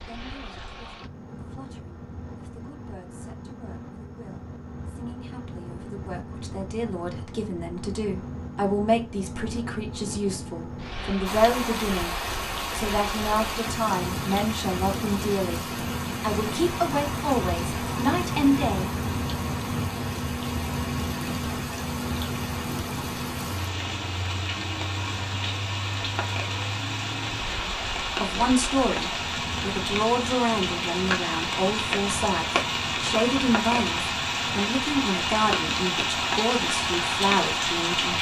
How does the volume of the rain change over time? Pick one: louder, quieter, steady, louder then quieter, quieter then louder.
louder.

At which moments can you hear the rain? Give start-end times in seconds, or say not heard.
11.2-38.1.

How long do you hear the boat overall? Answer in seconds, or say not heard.
38 s.